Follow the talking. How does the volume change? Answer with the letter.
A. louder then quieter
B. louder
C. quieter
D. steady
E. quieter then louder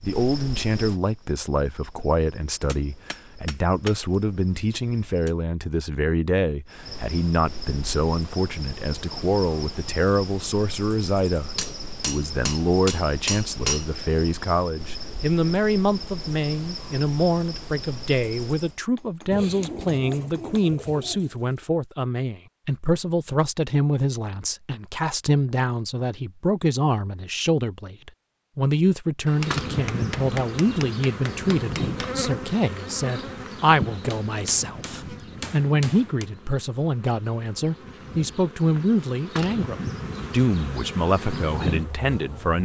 D.